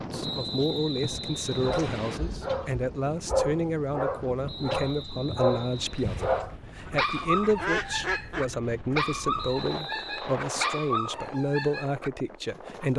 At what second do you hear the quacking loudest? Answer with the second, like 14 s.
8 s.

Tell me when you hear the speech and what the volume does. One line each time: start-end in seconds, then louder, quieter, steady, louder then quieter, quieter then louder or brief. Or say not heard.
0.1-12.9 steady.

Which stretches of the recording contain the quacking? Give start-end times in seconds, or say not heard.
6.0-8.6.